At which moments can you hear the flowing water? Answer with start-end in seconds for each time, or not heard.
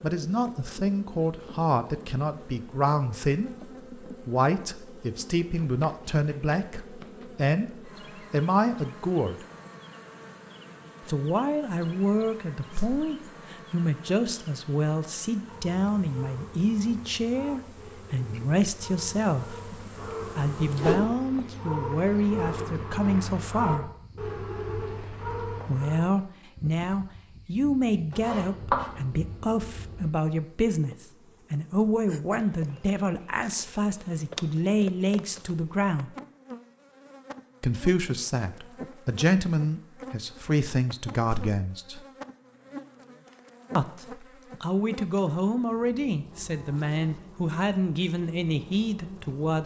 not heard.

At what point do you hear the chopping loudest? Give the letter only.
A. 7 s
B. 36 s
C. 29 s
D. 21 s
C.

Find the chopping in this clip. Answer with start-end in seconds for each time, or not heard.
5.6-7.3, 28.1-30.1.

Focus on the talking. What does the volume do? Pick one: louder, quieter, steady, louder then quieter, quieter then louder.
steady.